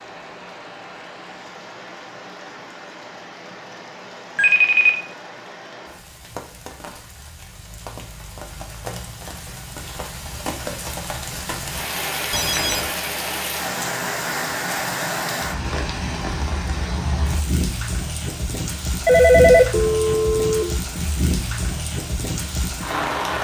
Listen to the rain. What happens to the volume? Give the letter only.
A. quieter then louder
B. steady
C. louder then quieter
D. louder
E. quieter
D.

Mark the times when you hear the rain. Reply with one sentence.
You can hear the rain from 0.0 to 23.3 s.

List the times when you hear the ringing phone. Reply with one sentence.
The ringing phone can be heard from 4.3 to 5.0 s, from 12.3 to 12.9 s and from 19.1 to 20.8 s.